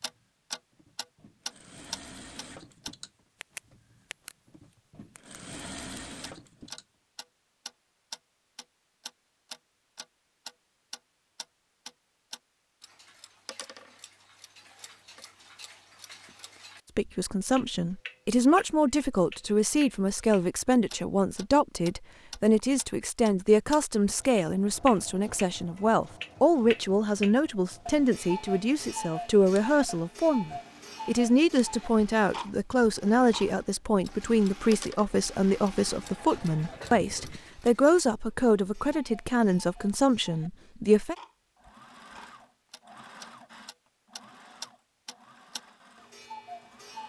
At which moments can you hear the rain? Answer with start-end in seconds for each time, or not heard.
not heard.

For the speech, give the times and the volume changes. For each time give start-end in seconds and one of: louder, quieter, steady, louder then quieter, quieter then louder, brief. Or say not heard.
16.9-41.1 steady.